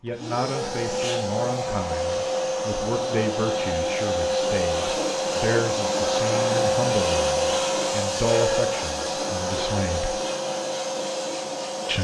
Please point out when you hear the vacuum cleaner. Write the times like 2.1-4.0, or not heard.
0.1-11.9.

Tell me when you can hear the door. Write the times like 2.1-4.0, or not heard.
not heard.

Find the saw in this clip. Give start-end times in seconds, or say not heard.
not heard.